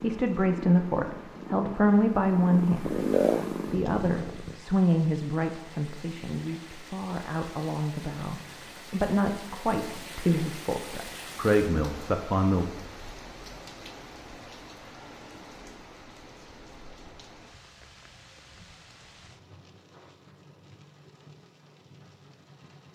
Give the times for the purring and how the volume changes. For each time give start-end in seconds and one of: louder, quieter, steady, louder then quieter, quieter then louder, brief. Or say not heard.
0.0-4.5 louder then quieter.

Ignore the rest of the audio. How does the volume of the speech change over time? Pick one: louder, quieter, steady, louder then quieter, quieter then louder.
quieter then louder.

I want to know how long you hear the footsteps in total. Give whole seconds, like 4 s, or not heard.
not heard.